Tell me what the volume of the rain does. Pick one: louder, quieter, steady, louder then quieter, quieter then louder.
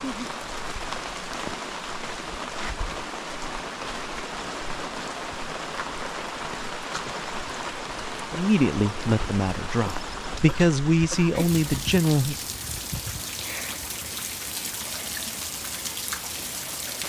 steady.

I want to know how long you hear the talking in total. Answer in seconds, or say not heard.
4 s.